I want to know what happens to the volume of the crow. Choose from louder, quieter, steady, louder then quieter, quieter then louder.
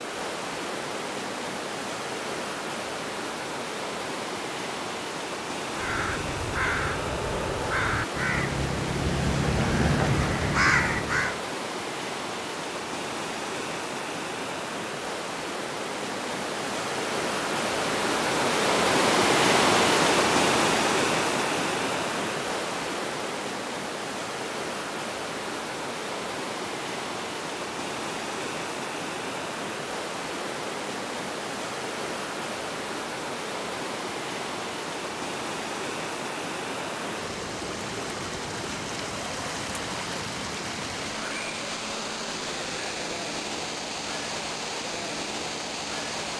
louder.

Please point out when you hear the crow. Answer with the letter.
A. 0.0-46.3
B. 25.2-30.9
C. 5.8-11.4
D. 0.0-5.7
C.